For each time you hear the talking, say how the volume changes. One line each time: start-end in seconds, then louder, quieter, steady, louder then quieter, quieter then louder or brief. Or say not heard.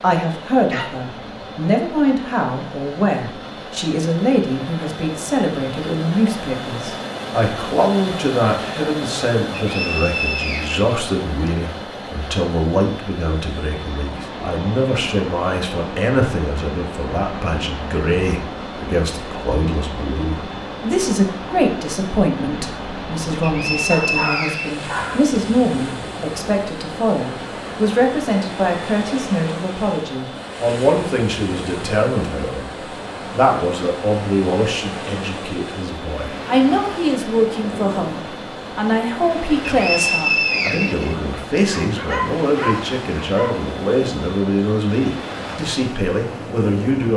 0.0-47.1 steady.